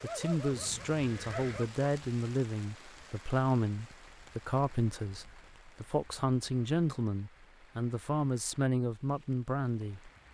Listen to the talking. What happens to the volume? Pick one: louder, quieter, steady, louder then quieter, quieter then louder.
steady.